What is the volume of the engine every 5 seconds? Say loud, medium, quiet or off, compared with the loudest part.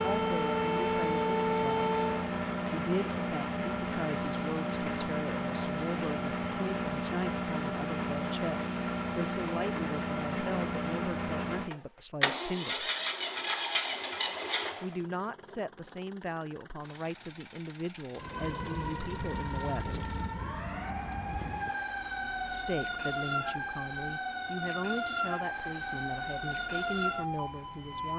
loud, loud, loud, quiet, quiet, quiet.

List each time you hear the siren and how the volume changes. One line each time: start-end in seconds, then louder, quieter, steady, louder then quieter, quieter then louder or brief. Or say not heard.
0.0-2.3 brief
18.1-28.1 steady.